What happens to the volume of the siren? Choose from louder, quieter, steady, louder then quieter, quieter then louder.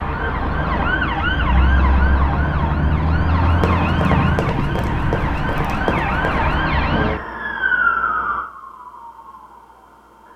quieter.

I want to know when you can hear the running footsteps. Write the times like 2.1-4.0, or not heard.
3.5-6.5.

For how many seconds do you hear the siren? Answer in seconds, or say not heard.
10 s.